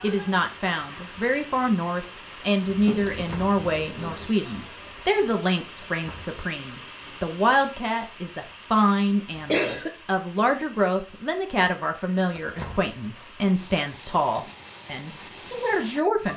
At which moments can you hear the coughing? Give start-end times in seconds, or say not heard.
2.6-4.3, 9.3-9.9.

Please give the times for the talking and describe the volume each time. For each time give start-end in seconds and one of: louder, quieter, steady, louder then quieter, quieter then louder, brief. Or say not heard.
0.0-16.3 steady.